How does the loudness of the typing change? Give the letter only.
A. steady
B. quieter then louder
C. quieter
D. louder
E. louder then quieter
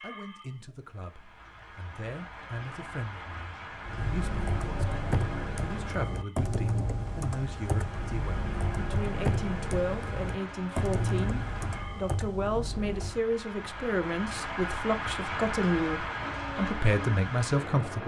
A.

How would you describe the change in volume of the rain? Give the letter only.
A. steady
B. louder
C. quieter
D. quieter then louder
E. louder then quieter
B.